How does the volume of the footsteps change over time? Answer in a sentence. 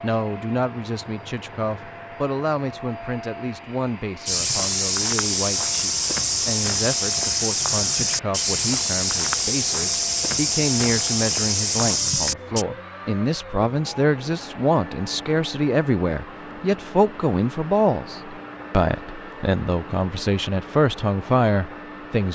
The volume of the footsteps stays about the same.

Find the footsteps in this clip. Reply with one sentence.
The footsteps can be heard from 4.2 to 12.7 s.